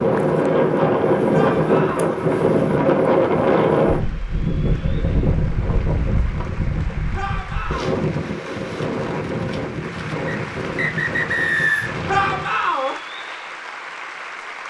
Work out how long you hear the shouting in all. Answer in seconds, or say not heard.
3 s.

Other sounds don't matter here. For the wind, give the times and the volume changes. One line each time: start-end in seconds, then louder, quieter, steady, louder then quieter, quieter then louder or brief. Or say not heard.
0.0-12.6 quieter.